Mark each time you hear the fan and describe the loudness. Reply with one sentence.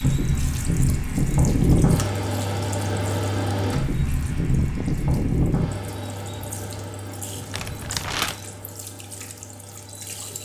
You can hear the fan from 0.0 to 10.4 s, getting quieter.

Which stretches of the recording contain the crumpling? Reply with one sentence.
You can hear the crumpling from 7.5 to 8.3 s.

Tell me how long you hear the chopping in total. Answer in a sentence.
The chopping can't be heard in this clip.